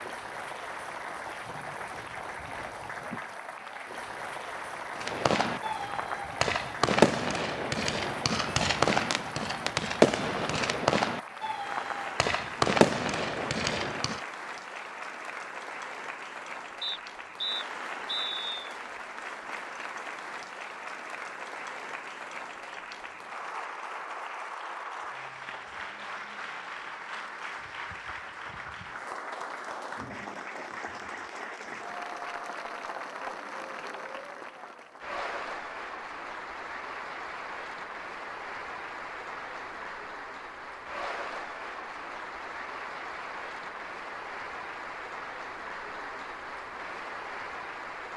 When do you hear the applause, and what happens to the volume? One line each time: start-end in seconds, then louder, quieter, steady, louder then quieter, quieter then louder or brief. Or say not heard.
0.0-48.1 steady.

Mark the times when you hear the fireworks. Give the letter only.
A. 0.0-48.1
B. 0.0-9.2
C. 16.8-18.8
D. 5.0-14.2
D.